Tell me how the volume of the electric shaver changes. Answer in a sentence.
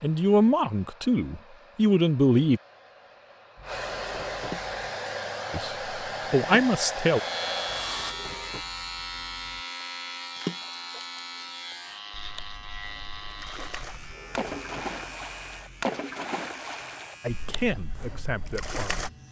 The volume of the electric shaver goes down.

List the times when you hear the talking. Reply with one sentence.
The talking can be heard from 0.0 to 2.6 s, from 5.5 to 7.2 s and from 17.2 to 19.1 s.